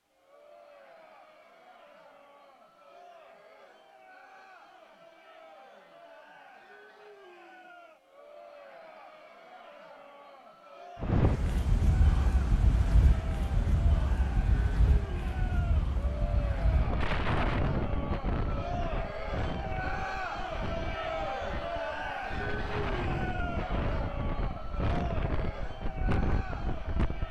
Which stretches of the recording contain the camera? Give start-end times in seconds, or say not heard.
not heard.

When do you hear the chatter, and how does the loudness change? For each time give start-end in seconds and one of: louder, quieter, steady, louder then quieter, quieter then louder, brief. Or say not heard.
0.1-27.2 louder.